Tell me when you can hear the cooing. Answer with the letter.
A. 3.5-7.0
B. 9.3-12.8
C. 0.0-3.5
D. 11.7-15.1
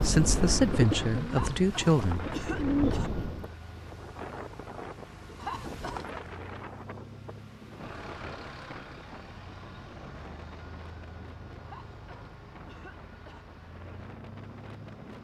C.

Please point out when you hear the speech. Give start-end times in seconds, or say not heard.
0.0-2.4.